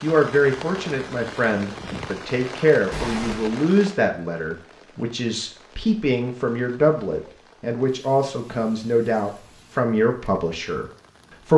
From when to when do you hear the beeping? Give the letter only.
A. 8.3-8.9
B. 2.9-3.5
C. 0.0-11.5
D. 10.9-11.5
B.